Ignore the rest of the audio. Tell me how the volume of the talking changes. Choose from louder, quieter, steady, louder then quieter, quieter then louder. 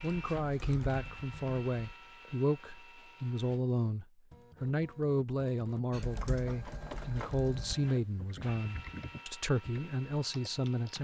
steady.